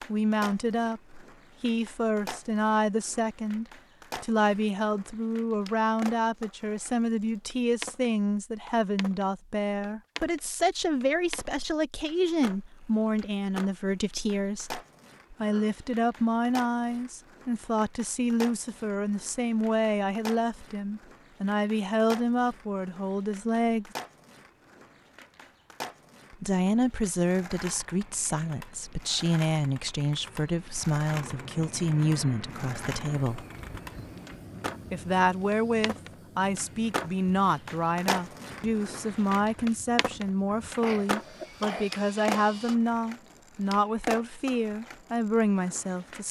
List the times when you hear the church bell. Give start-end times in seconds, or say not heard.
not heard.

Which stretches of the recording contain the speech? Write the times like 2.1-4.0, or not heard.
0.1-23.9, 26.3-33.5, 34.9-46.2.